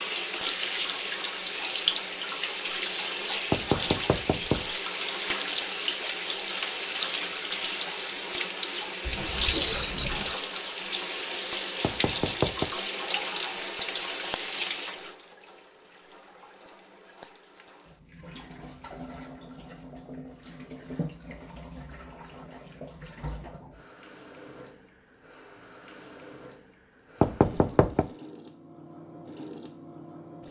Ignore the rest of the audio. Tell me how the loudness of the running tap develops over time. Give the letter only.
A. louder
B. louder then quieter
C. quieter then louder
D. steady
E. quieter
E.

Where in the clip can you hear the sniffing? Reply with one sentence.
You can hear the sniffing from 9.0 to 10.3 s.